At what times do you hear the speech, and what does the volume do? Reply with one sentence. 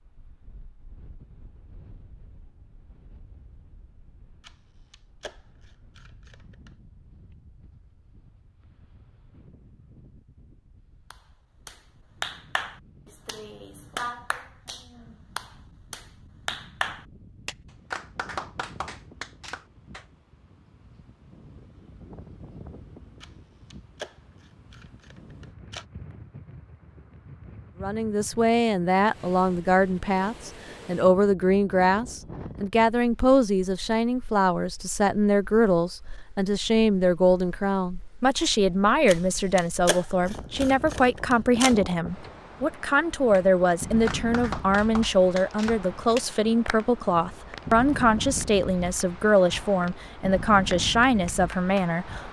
The speech can be heard from 27.8 to 52.2 s, at a steady volume.